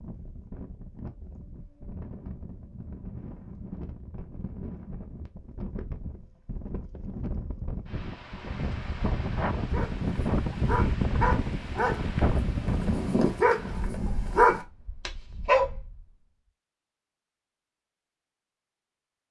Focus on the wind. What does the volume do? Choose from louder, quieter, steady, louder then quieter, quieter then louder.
louder then quieter.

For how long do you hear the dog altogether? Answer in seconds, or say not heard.
6 s.